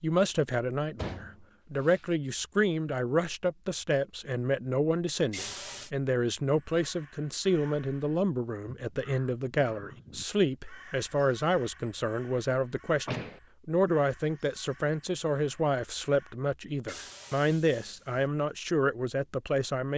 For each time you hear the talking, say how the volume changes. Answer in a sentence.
The talking can be heard from 0.0 to 19.9 s, at a steady volume.